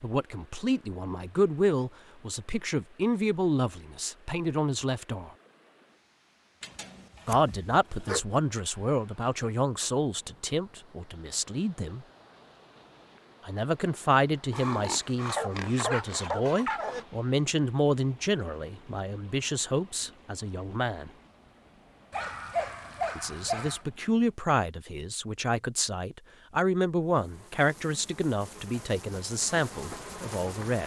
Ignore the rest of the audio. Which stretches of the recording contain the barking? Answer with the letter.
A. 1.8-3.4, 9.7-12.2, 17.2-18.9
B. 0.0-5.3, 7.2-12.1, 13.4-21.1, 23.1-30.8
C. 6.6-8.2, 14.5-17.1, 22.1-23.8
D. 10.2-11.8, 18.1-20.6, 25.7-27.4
C.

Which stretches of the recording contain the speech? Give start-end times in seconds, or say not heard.
0.0-5.3, 7.2-12.1, 13.4-21.1, 23.1-30.8.